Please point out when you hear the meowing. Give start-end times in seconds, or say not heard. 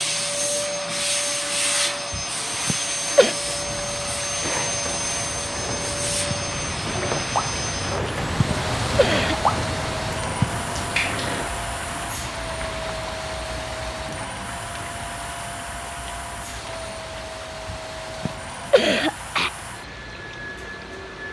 not heard.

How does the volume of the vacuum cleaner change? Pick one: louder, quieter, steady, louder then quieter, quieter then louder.
quieter.